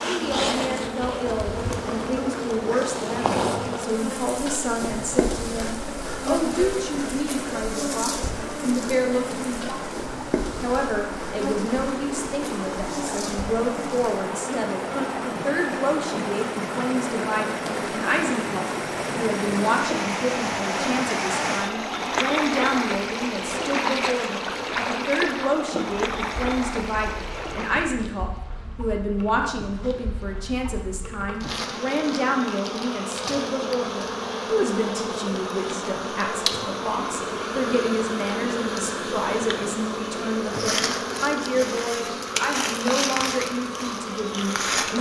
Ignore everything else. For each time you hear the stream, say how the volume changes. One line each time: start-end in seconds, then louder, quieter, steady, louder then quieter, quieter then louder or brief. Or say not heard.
0.0-27.9 louder.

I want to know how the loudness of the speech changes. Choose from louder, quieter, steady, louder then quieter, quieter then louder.
steady.